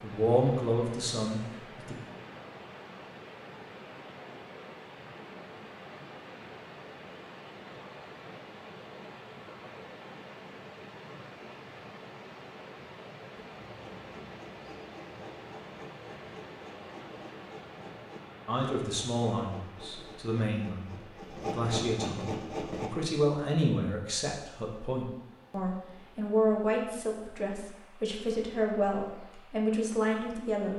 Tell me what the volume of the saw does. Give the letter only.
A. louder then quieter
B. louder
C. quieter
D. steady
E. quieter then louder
B.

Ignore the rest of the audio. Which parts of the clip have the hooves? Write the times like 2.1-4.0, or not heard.
not heard.